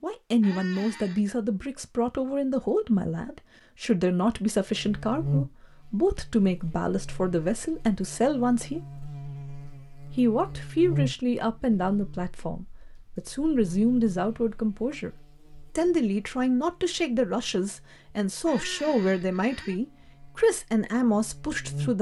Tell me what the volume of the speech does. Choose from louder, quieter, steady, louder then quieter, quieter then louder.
steady.